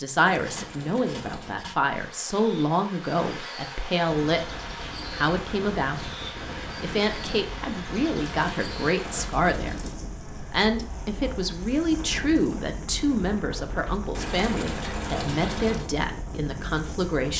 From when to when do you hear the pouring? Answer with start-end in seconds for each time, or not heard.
0.2-1.6, 8.2-10.0, 14.1-15.9.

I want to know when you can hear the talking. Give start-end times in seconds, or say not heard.
0.0-6.2, 6.8-9.8, 10.5-17.3.